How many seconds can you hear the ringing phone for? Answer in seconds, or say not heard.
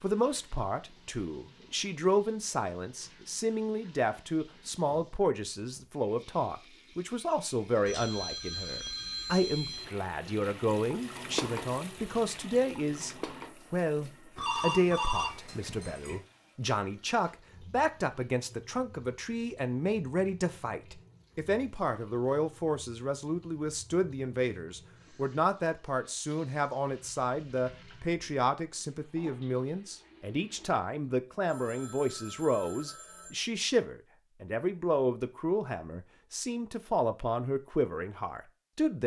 6 s.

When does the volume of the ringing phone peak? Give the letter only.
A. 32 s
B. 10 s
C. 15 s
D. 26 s
C.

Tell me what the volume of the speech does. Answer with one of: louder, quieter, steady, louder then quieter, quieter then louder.
steady.